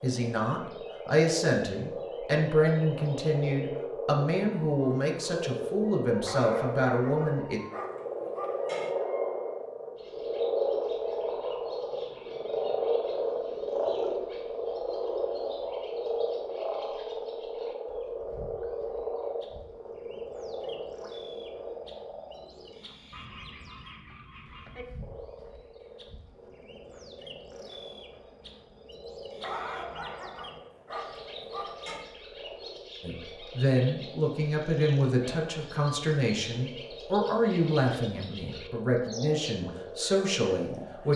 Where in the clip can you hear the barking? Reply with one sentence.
You can hear the barking from 6.2 to 8.9 s and from 29.4 to 32.1 s.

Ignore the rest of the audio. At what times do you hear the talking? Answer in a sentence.
You can hear the talking from 0.0 to 7.6 s and from 33.0 to 41.1 s.